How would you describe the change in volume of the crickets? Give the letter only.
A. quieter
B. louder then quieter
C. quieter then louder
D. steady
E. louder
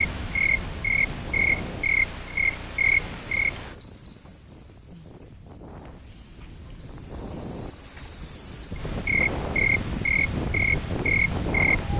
C.